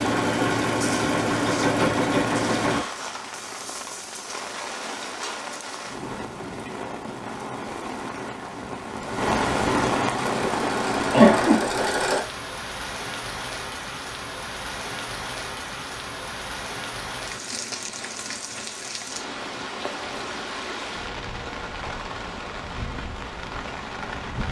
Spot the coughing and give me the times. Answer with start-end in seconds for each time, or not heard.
11.1-11.9.